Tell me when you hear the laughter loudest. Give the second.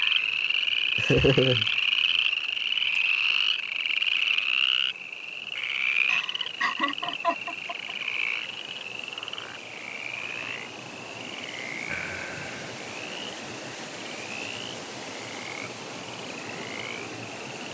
1 s.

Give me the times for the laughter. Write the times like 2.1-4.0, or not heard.
0.7-1.6, 6.0-8.0, 11.8-12.7.